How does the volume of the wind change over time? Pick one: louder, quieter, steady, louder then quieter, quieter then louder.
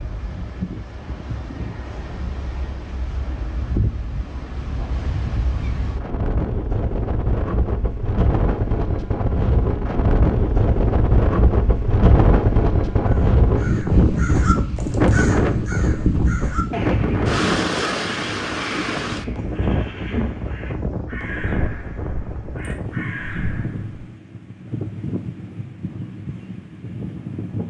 louder then quieter.